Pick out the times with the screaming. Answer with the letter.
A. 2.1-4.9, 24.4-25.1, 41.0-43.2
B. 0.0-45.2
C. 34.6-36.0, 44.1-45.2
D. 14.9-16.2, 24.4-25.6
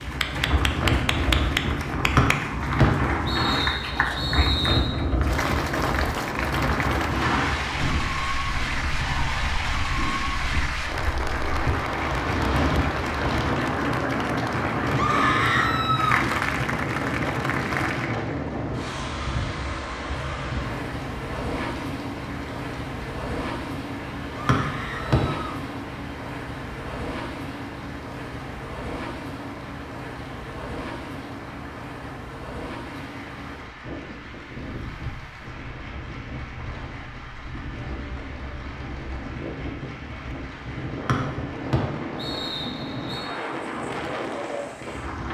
D.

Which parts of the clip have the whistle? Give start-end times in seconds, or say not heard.
2.1-4.9, 24.4-25.1, 41.0-43.2.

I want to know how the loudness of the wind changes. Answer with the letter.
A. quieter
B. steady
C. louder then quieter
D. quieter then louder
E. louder
A.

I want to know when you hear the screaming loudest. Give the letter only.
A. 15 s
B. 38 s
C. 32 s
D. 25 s
A.